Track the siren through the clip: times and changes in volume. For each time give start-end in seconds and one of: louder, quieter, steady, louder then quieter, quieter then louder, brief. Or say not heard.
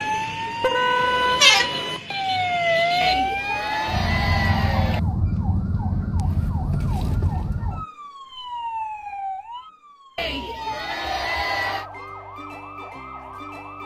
0.0-13.8 quieter.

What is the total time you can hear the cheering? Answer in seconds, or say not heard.
4 s.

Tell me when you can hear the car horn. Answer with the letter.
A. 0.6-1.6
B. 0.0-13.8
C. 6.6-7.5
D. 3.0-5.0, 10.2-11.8
A.